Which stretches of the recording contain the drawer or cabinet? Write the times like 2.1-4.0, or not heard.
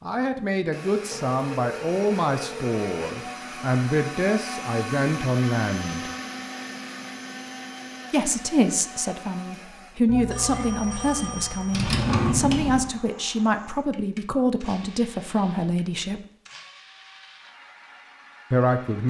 11.7-12.9.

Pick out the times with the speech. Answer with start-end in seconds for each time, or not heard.
0.0-6.1, 8.1-16.2, 18.5-19.0.